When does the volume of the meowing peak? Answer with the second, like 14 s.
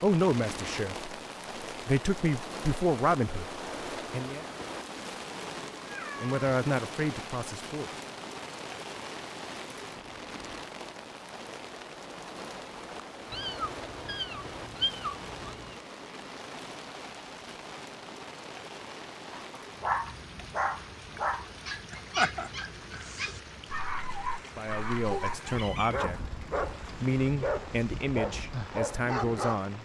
15 s.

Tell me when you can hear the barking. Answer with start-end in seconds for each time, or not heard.
19.4-29.6.